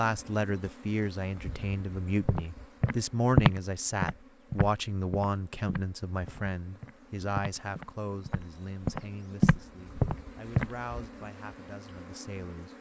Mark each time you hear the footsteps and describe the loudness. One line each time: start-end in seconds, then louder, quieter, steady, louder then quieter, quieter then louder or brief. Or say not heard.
2.2-10.7 quieter then louder.